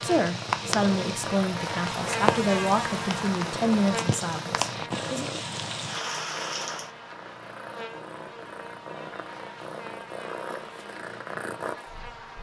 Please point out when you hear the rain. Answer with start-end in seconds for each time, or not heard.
0.0-6.9.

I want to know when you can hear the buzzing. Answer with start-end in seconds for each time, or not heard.
0.0-12.3.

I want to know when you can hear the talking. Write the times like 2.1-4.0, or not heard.
0.0-5.4.